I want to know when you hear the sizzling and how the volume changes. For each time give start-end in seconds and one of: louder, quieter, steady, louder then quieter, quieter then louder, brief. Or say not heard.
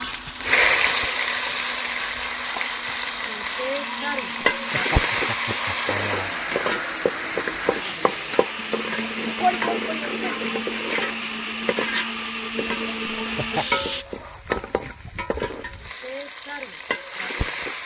0.0-17.8 quieter.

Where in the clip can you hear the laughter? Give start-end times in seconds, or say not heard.
4.5-6.3, 13.2-13.8.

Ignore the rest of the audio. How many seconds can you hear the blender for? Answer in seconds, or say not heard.
14 s.